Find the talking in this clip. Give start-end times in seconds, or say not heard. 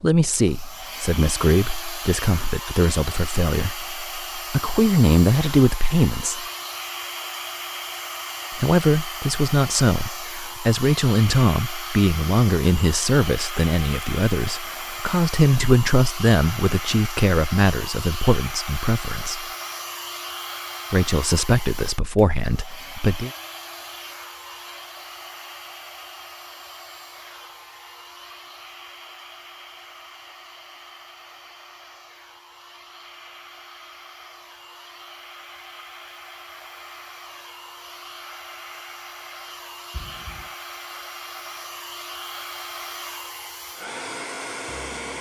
0.0-6.5, 8.5-19.4, 20.9-23.3.